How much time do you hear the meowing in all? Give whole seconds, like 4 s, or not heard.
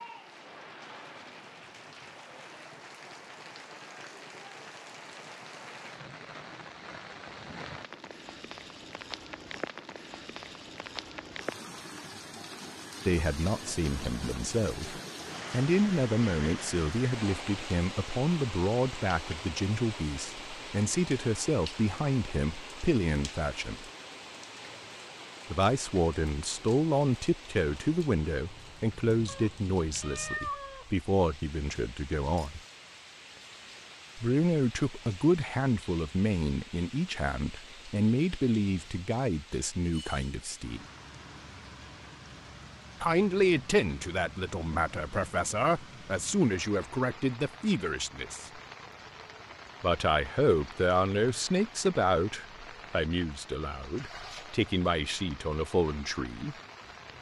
2 s.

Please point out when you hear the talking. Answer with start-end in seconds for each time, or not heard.
13.1-23.9, 25.5-32.6, 34.1-40.9, 43.0-48.5, 49.8-56.5.